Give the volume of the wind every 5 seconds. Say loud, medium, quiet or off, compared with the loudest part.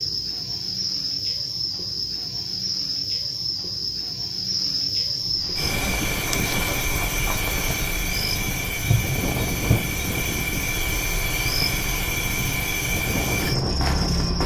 off, loud, loud.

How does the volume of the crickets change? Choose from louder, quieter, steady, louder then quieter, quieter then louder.
steady.